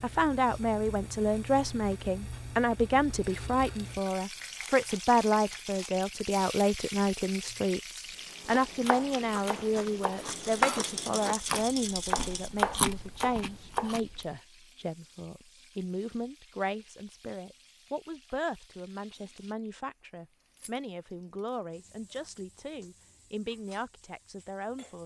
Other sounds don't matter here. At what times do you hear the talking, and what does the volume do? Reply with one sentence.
You can hear the talking from 0.0 to 25.0 s, getting quieter.